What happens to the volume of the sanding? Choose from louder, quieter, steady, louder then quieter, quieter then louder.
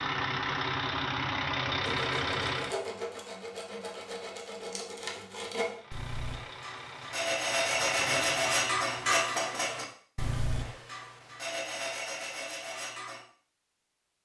louder then quieter.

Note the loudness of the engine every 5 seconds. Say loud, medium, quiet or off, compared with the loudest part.
loud, medium, off.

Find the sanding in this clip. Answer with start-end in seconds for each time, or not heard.
1.8-13.2.